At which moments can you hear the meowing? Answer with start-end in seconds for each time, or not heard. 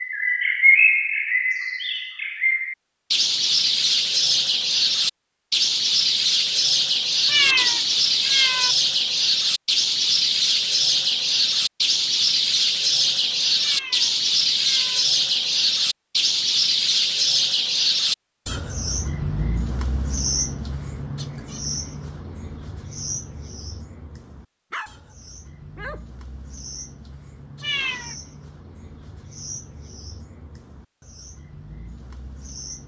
7.2-8.8, 13.6-15.1, 27.6-28.1.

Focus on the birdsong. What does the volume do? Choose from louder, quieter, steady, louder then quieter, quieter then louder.
quieter.